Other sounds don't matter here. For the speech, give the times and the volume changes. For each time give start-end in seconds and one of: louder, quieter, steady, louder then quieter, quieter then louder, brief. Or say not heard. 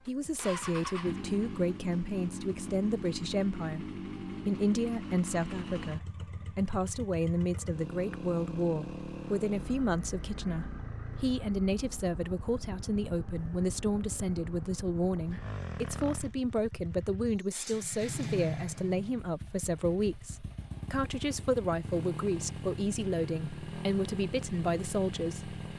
0.1-25.5 steady.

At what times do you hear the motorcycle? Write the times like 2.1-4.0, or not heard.
0.0-25.7.